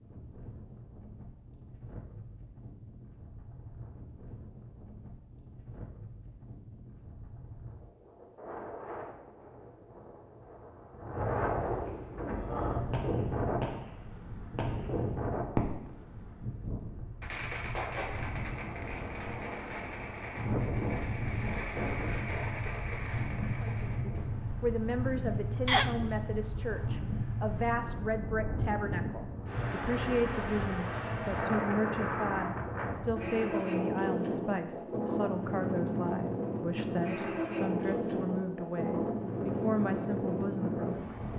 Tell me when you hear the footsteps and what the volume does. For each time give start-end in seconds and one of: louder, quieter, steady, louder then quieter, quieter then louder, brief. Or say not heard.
not heard.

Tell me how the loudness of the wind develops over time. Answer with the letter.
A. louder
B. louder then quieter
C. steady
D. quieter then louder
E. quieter
A.